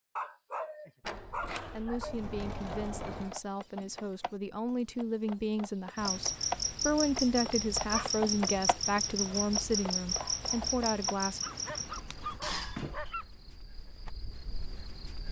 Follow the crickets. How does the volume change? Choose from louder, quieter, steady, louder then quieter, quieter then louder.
quieter.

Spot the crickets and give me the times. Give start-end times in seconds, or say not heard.
6.0-15.2.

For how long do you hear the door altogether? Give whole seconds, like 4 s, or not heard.
3 s.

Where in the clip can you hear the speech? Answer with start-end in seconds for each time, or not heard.
1.7-11.4.